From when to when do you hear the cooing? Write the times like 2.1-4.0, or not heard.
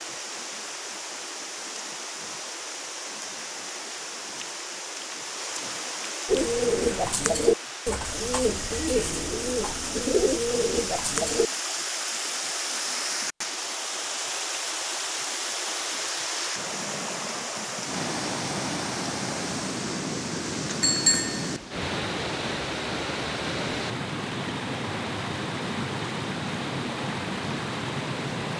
6.2-11.4.